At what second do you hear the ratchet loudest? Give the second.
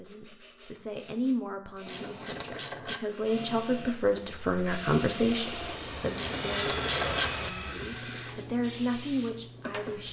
7 s.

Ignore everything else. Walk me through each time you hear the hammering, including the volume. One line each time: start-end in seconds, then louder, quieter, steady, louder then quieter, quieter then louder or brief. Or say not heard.
not heard.